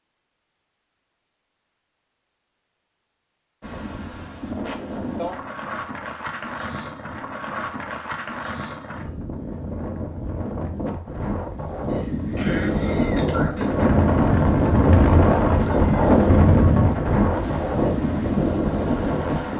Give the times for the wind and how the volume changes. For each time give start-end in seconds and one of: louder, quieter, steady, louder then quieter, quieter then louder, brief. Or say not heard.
3.6-19.5 louder.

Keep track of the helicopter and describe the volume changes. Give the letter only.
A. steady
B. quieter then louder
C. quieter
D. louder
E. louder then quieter
C.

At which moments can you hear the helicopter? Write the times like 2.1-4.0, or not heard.
13.5-19.5.